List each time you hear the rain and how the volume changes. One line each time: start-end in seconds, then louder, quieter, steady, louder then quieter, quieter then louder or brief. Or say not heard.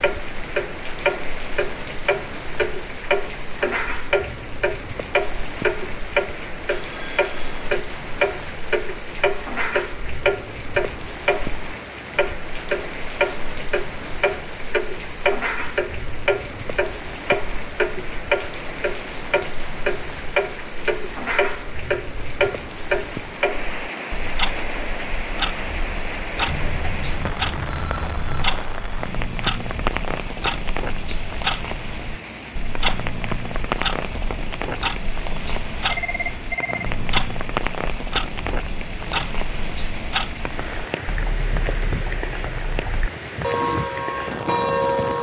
0.0-45.1 steady.